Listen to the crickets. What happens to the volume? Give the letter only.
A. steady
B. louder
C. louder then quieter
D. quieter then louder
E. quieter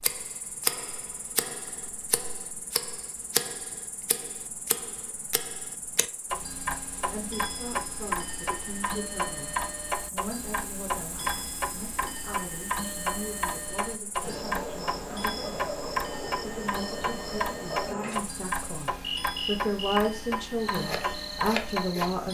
B.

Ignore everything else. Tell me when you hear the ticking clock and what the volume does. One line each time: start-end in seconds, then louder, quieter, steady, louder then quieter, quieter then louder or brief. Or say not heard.
0.0-22.2 steady.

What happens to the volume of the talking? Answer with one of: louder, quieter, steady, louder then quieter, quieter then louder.
louder.